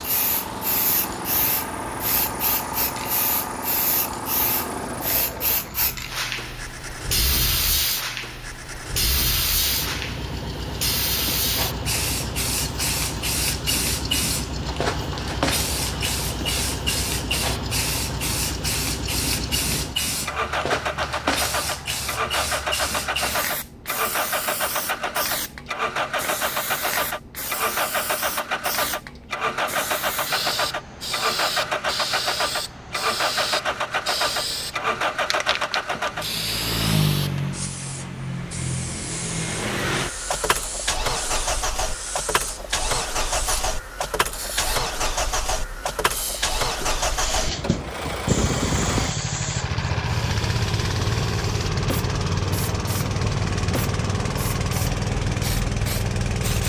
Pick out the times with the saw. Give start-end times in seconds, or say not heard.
not heard.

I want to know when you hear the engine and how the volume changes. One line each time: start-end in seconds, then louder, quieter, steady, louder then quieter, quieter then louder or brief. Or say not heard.
0.0-56.6 louder.